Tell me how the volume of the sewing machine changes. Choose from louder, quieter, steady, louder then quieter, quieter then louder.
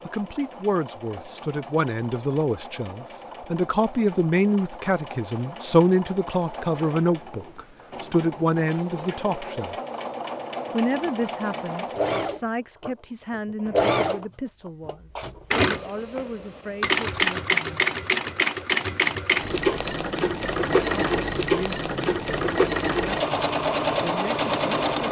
louder.